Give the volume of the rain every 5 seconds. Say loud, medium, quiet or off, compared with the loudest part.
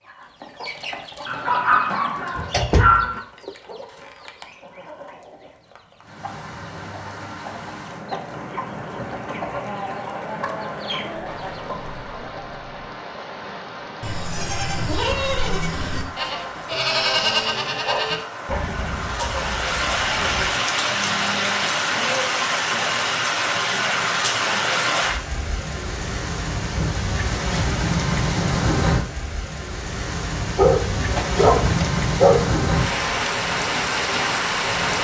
off, quiet, quiet, medium, loud, loud, loud.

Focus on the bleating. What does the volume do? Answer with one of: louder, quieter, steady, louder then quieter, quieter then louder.
quieter.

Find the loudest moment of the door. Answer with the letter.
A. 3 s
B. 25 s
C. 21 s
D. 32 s
A.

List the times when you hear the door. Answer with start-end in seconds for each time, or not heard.
1.9-3.5, 30.9-31.9.